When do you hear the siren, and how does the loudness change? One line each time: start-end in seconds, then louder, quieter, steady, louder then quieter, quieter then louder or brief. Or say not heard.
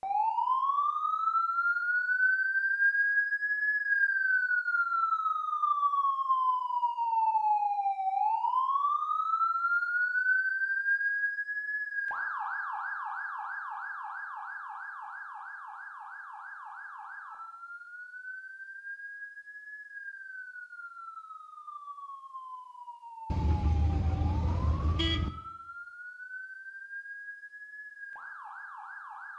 0.0-29.3 quieter.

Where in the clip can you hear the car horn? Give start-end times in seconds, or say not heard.
23.2-25.3.